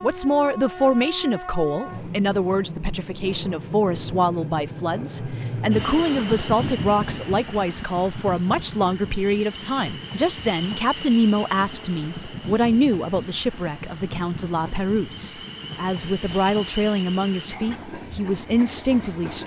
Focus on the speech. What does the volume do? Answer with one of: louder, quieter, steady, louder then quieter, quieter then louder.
steady.